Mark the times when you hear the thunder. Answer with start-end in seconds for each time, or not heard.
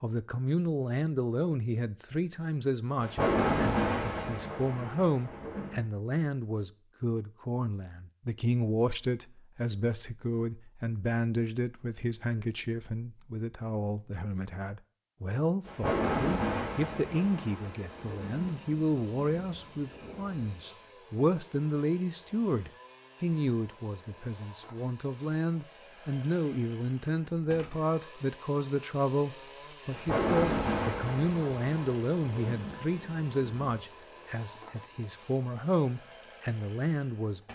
3.0-5.8, 15.7-20.6, 29.9-33.8.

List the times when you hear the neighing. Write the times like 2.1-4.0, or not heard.
not heard.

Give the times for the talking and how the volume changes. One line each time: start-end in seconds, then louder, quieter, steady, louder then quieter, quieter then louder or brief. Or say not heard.
0.0-37.4 steady.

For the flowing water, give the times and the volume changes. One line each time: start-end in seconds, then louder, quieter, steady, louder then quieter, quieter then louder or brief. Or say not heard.
not heard.